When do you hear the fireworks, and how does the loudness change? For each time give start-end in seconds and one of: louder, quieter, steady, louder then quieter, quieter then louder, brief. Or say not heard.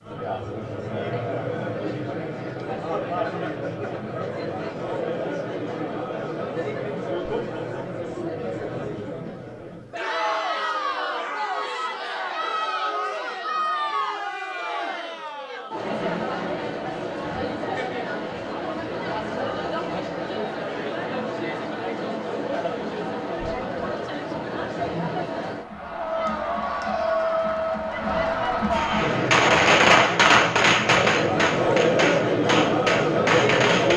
28.7-33.9 quieter.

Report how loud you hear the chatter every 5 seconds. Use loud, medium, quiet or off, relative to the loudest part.
medium, medium, medium, medium, medium, loud, loud.